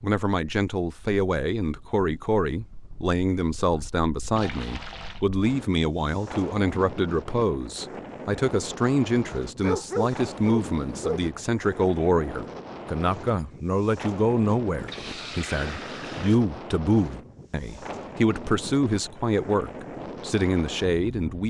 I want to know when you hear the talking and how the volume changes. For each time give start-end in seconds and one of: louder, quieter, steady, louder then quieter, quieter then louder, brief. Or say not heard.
0.0-21.4 steady.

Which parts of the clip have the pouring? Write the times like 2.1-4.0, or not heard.
4.3-5.2, 14.7-16.4.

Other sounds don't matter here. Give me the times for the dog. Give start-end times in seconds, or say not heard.
9.6-11.3.